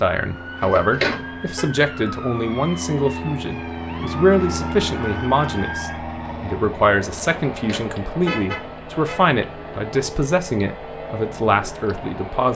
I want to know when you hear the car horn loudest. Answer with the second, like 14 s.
1 s.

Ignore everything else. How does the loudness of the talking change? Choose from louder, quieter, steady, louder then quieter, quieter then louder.
steady.